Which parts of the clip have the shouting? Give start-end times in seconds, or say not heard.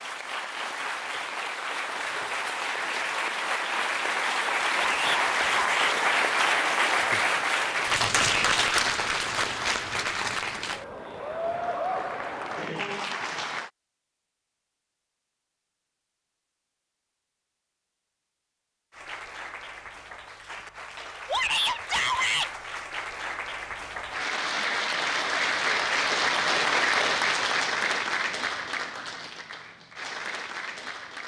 4.8-6.0, 21.2-22.5.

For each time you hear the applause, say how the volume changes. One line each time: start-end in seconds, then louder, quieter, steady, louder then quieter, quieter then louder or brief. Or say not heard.
0.0-13.7 louder then quieter
18.9-31.2 louder then quieter.